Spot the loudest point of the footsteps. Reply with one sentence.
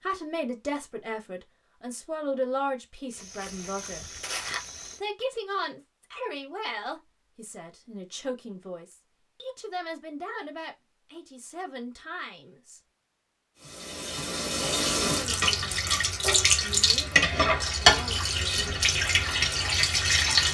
The loudest moment of the footsteps is at 4 seconds.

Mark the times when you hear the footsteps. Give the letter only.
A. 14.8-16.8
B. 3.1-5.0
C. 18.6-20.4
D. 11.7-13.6
B.